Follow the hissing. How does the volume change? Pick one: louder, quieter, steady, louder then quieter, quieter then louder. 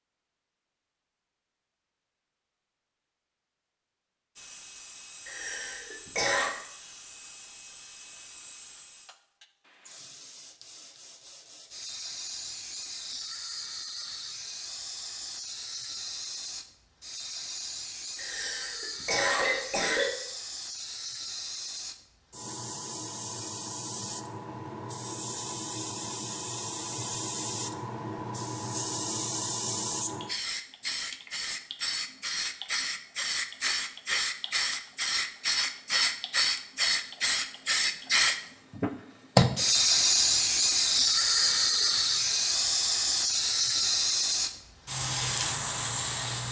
louder.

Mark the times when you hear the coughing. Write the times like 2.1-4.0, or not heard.
5.2-6.5, 18.1-20.1, 41.1-41.9.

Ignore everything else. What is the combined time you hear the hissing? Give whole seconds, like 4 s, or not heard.
42 s.